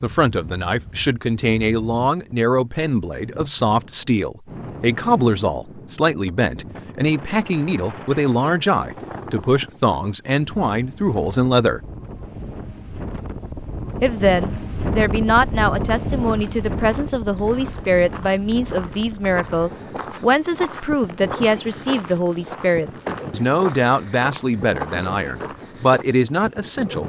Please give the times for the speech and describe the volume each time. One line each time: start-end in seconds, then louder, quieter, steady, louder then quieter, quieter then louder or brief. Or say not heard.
0.0-11.8 steady
14.0-27.0 steady.